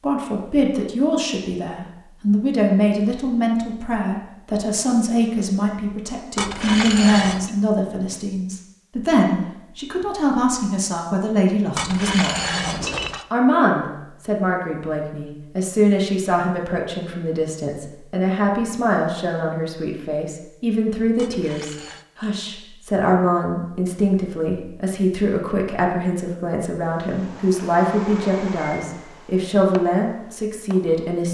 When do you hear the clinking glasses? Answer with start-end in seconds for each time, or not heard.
6.3-7.5, 11.8-13.2, 21.1-22.1.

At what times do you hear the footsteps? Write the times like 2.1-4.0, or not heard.
not heard.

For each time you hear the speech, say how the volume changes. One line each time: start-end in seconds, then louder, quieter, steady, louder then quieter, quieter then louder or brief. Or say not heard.
0.0-31.2 steady.